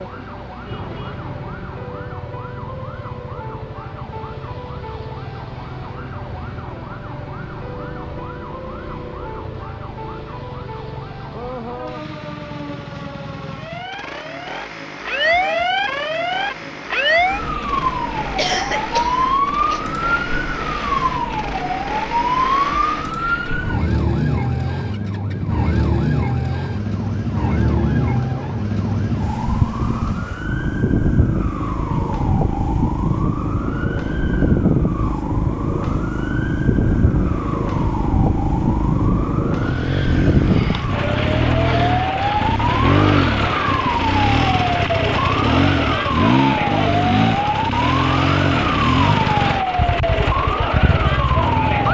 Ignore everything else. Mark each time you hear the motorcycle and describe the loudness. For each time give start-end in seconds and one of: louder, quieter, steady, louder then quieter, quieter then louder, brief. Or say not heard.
0.0-51.8 louder.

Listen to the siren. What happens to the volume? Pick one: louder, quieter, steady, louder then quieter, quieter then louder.
louder.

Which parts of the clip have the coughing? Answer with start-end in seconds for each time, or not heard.
18.4-19.8.